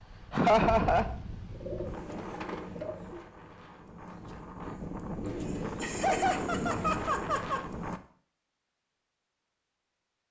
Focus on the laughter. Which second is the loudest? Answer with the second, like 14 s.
1 s.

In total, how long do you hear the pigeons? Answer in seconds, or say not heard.
4 s.